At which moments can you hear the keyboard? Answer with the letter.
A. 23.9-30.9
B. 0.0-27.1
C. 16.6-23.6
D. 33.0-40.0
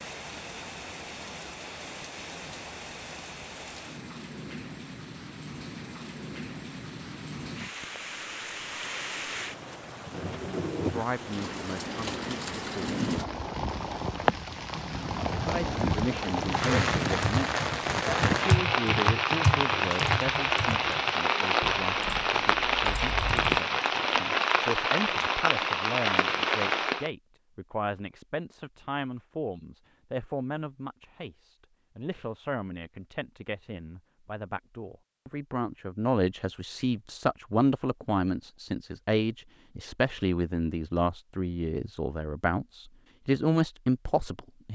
C.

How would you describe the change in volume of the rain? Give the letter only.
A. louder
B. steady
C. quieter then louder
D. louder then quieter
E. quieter
A.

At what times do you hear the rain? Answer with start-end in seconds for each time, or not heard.
0.0-27.1.